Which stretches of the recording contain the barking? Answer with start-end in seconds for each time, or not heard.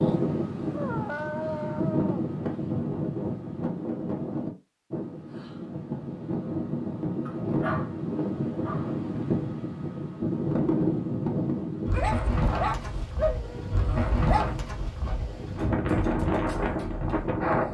0.7-2.3, 7.2-9.2, 11.9-14.6.